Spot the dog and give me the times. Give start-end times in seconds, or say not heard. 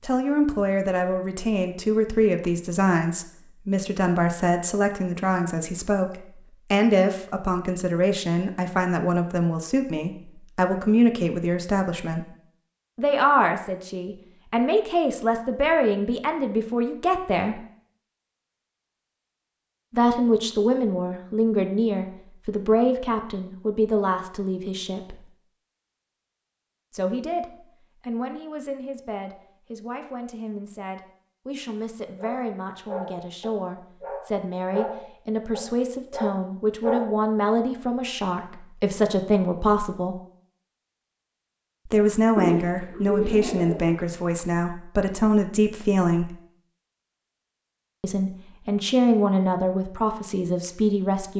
32.1-37.2.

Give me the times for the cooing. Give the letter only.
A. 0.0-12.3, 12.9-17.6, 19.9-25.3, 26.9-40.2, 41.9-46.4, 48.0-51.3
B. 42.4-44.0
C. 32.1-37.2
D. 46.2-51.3
B.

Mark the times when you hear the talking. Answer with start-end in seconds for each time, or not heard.
0.0-12.3, 12.9-17.6, 19.9-25.3, 26.9-40.2, 41.9-46.4, 48.0-51.3.